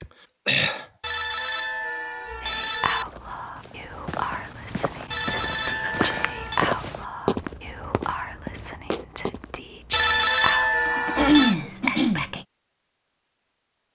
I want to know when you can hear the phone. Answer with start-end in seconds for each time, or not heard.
1.0-3.0, 5.1-6.7, 9.9-11.6.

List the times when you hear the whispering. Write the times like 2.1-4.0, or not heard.
2.4-12.4.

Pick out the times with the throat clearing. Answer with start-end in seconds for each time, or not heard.
0.0-0.8, 5.7-6.3, 10.8-12.2.